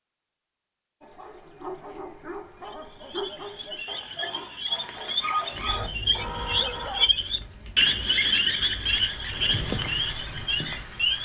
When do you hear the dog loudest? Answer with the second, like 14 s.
5 s.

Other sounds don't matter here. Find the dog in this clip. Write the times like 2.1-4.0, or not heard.
1.0-7.1.